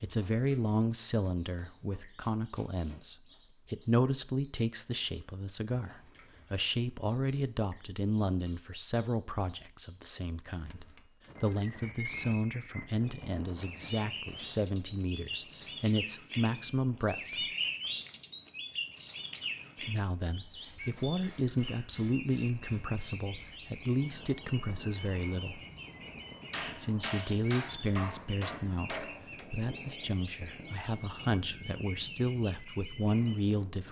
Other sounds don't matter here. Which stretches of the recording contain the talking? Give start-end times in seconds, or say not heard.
0.0-17.4, 19.8-25.6, 26.8-33.8.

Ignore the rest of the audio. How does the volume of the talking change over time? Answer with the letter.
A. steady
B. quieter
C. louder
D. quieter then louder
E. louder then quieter
A.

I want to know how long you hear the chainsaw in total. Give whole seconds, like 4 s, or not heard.
not heard.